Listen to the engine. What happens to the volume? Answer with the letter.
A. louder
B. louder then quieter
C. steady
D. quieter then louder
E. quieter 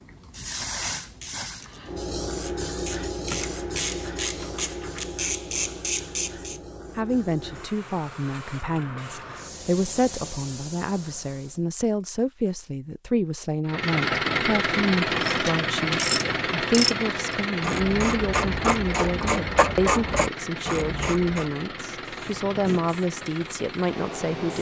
E.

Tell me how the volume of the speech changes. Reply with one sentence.
The volume of the speech stays about the same.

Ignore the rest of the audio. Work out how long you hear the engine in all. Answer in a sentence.
You can hear the engine for 11 seconds altogether.